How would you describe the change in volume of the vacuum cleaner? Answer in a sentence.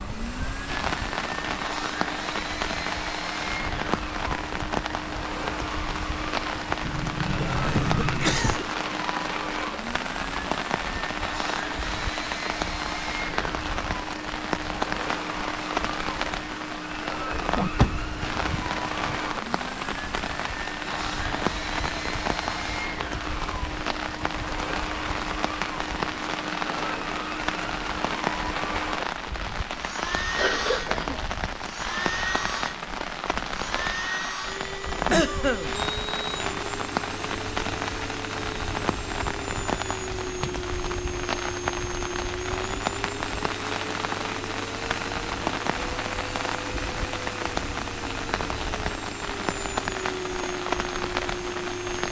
The volume of the vacuum cleaner stays about the same.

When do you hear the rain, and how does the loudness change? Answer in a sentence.
You can hear the rain from 0.0 to 52.0 s, at a steady volume.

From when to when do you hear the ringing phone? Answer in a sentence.
The ringing phone can't be heard in this clip.